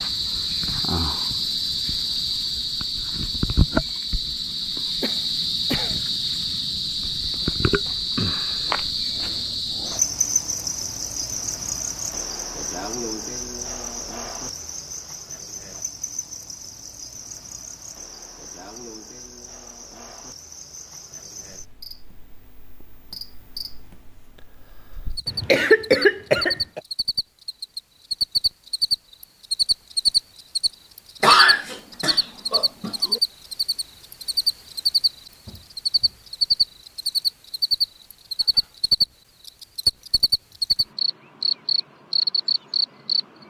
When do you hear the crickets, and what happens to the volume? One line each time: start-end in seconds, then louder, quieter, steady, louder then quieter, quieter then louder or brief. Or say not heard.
0.0-43.4 quieter then louder.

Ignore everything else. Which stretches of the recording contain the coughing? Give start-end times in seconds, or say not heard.
5.0-6.0, 25.2-26.8, 31.2-33.2.